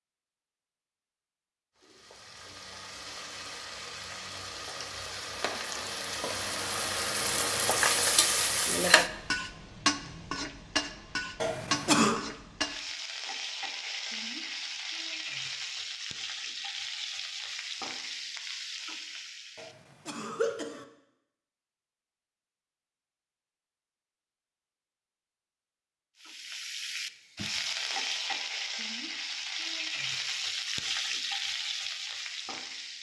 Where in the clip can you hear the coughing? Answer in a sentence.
The coughing can be heard from 11.4 to 12.2 s and from 19.6 to 20.9 s.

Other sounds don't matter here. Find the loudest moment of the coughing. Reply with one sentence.
The loudest moment of the coughing is at 12 seconds.